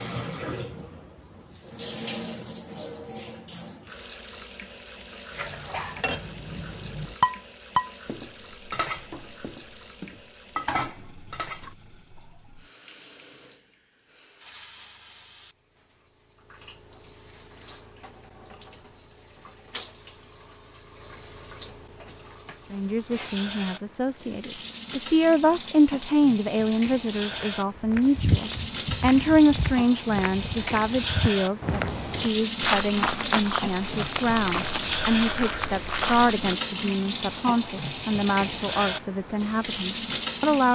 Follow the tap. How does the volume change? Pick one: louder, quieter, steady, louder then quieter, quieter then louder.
quieter then louder.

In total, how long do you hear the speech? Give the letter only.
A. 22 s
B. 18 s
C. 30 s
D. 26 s
B.